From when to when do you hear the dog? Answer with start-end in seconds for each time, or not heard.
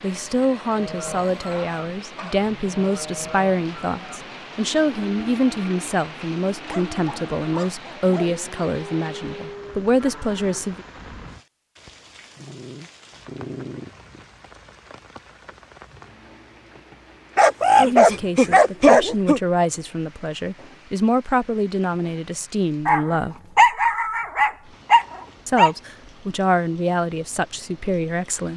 0.0-2.5, 6.7-8.4, 12.3-14.2, 17.4-19.4, 22.9-25.7.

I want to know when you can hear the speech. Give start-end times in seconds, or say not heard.
0.0-10.8, 17.8-23.4, 25.4-28.5.